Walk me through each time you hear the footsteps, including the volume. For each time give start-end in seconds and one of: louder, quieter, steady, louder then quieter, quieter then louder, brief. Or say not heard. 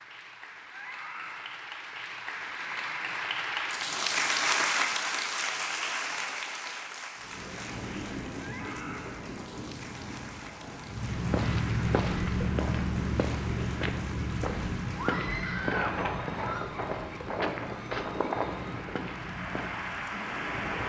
10.8-20.1 quieter.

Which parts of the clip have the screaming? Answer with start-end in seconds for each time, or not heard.
0.7-1.6, 8.3-9.2, 14.9-16.8.